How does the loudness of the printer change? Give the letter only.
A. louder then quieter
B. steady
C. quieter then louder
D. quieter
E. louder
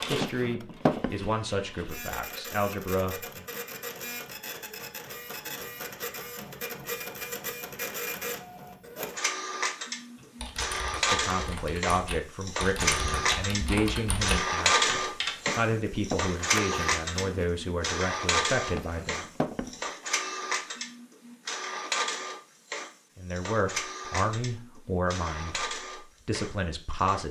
A.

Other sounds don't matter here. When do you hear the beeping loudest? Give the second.
1 s.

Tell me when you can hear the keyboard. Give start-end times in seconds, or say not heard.
10.2-15.5.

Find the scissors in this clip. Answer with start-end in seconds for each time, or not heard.
16.4-17.4.